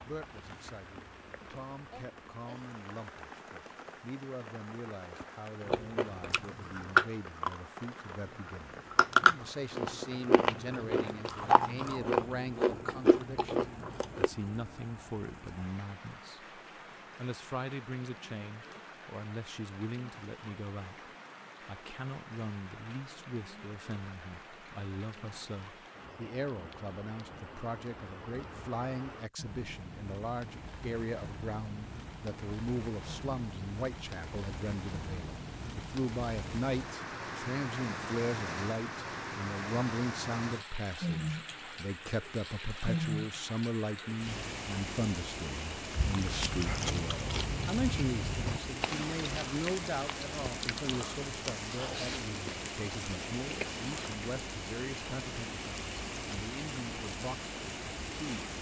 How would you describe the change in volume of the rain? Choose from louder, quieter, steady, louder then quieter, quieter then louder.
louder.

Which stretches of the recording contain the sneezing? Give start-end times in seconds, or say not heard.
1.9-2.6.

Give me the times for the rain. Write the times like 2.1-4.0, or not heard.
0.0-58.5.